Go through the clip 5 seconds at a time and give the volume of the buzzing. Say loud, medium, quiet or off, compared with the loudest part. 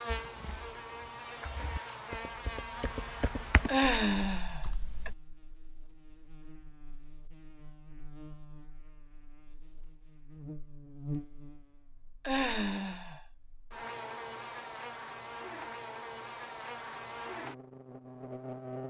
loud, quiet, loud, loud.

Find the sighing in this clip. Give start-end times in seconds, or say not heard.
3.6-5.1, 12.2-13.2.